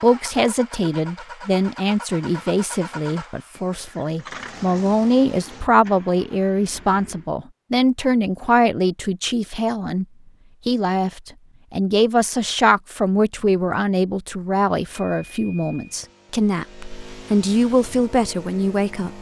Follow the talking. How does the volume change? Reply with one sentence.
The loudness of the talking stays about the same.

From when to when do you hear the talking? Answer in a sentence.
The talking can be heard from 0.0 to 10.1 s and from 10.7 to 19.1 s.